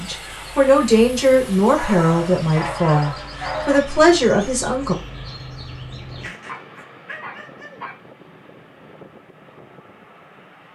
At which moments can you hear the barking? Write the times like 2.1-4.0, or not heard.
1.8-3.8, 6.2-8.0.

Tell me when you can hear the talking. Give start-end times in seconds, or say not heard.
0.0-5.0.